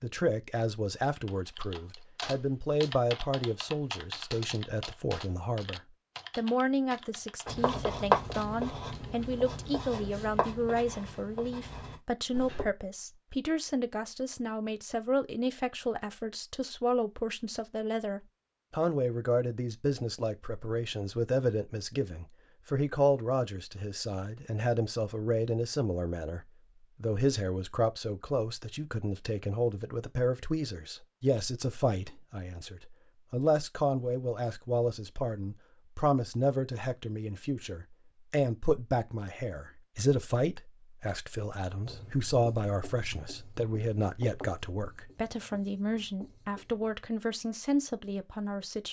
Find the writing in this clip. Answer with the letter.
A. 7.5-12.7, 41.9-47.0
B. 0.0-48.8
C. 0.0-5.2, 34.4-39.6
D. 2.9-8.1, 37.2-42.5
A.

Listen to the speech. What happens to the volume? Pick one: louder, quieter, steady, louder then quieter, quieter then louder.
steady.